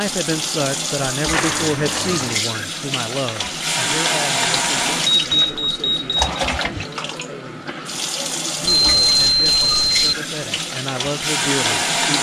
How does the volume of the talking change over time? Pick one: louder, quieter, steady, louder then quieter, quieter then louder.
quieter then louder.